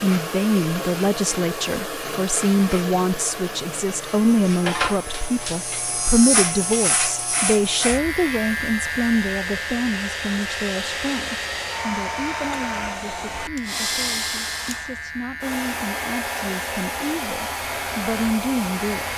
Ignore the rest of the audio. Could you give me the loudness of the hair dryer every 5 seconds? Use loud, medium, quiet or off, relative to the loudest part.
loud, medium, loud, loud.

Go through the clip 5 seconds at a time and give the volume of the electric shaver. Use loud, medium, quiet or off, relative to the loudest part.
loud, loud, medium, medium.